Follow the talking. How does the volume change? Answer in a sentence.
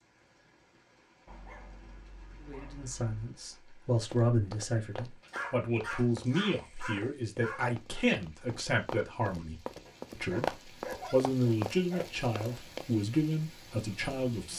The loudness of the talking stays about the same.